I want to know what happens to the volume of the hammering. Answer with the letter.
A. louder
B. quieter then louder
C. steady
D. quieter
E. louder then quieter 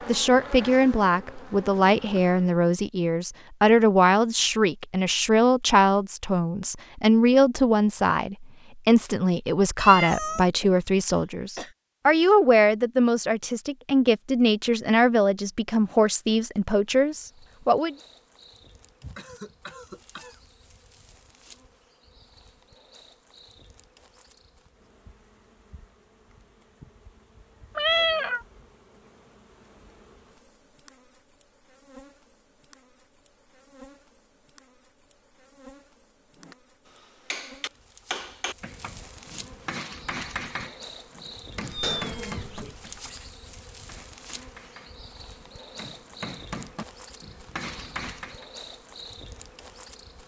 B.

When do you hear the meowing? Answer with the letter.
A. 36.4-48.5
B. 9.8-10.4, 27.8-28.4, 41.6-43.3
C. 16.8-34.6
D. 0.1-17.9
B.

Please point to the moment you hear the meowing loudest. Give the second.
28 s.